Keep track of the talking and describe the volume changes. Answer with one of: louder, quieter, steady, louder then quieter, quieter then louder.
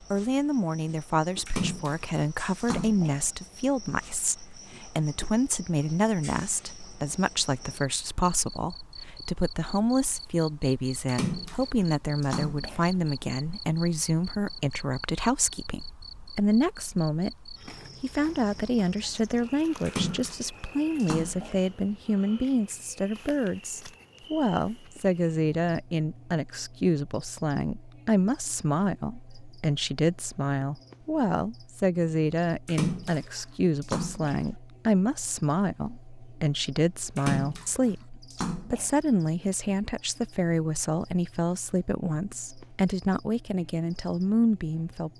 steady.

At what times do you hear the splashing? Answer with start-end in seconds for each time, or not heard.
1.4-3.2, 11.1-12.9, 19.9-21.6, 32.6-34.5, 37.1-39.0.